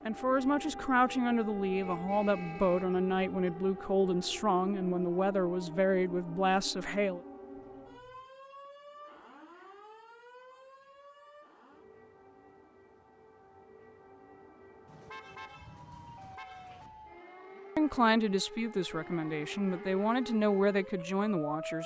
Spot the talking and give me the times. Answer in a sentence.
You can hear the talking from 0.1 to 7.2 s and from 17.8 to 21.8 s.